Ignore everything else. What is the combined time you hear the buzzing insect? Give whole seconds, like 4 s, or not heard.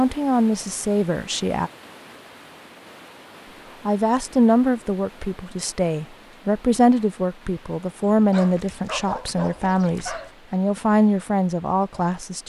not heard.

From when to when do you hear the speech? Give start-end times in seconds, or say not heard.
0.0-1.7, 3.9-12.4.